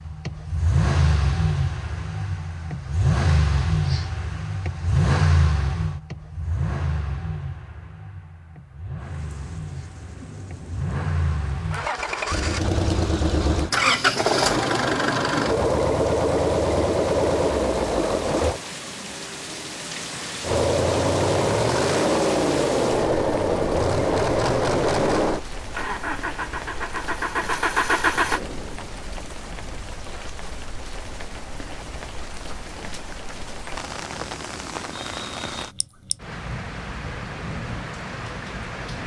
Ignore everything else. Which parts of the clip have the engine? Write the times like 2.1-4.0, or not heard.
0.0-18.6, 20.4-28.4.